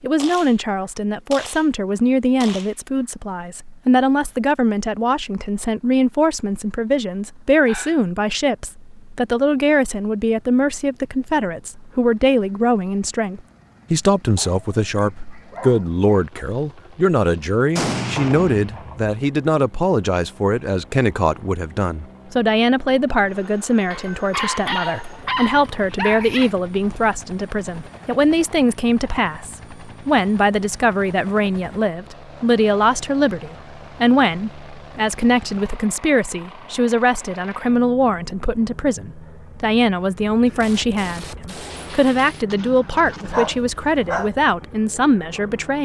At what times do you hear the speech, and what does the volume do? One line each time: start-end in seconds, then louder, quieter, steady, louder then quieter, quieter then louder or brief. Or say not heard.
0.0-45.7 steady.